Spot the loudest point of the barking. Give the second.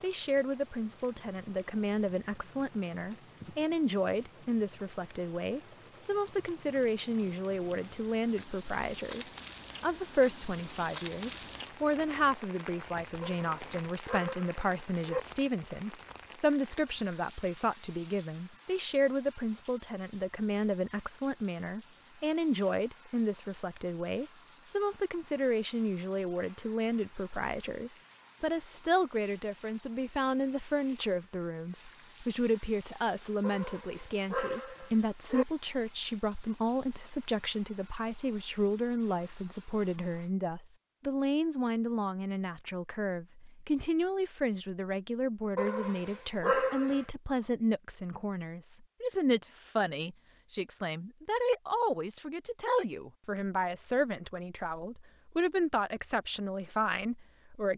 47 s.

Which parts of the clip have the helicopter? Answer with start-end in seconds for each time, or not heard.
not heard.